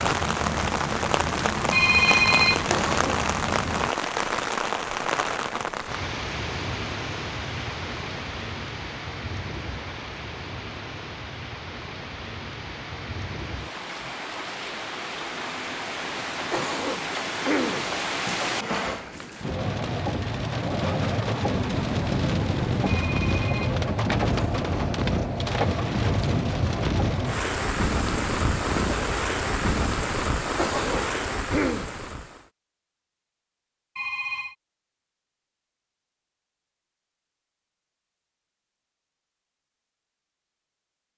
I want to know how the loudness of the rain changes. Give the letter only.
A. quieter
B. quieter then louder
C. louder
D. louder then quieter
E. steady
B.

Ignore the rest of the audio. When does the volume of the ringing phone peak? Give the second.
2 s.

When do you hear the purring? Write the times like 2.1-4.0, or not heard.
0.0-3.9, 21.7-29.9.